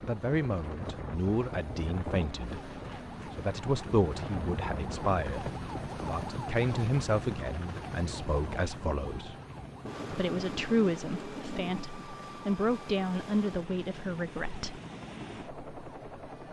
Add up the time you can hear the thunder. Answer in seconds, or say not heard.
2 s.